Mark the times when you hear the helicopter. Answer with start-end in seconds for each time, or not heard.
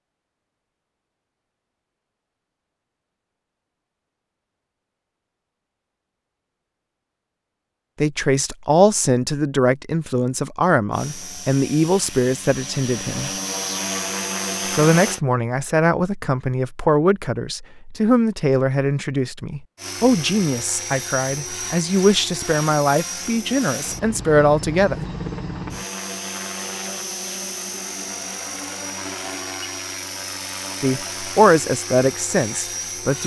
10.9-15.2, 19.8-33.2.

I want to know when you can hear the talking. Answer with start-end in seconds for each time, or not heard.
8.0-13.3, 14.7-25.1, 30.8-33.2.